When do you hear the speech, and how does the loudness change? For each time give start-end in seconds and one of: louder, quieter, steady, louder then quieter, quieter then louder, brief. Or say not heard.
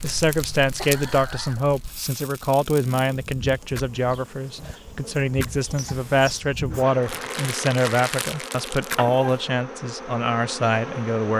0.0-11.3 steady.